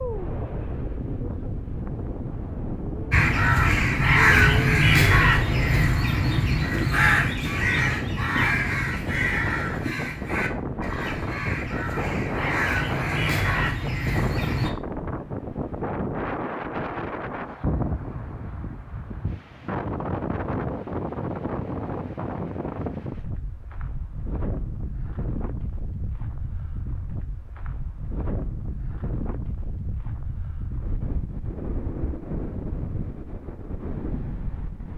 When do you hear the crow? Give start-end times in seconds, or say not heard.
3.1-14.7.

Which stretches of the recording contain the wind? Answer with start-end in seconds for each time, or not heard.
0.0-34.9.